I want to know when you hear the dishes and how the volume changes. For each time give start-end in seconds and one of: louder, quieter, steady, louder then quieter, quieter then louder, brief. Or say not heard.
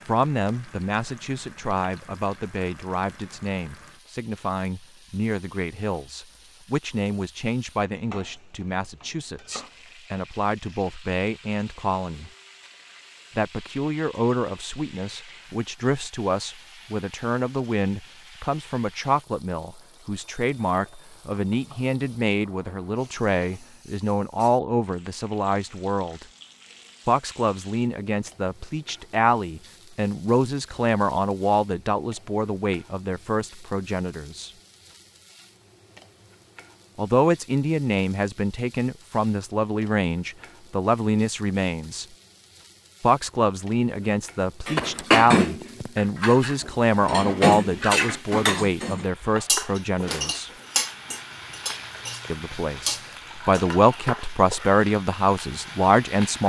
44.6-54.1 quieter.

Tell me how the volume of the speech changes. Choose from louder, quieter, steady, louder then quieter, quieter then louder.
louder.